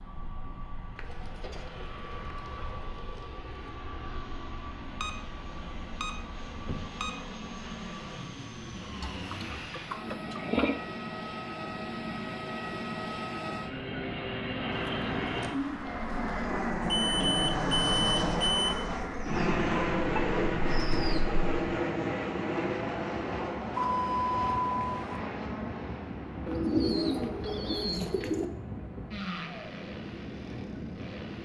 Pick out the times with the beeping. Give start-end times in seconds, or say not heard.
5.0-7.2, 16.8-18.7, 23.8-25.2.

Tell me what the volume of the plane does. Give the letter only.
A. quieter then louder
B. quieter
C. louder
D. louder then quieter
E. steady
D.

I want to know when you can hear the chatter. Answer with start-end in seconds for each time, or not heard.
not heard.